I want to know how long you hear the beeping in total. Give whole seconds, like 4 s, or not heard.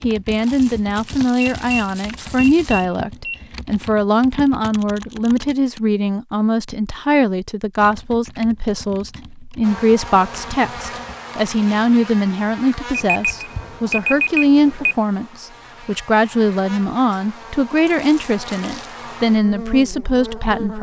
4 s.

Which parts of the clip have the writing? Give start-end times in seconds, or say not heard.
not heard.